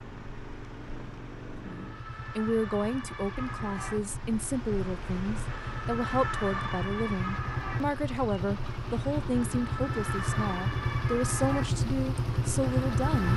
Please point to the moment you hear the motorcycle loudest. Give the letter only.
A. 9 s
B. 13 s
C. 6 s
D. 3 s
B.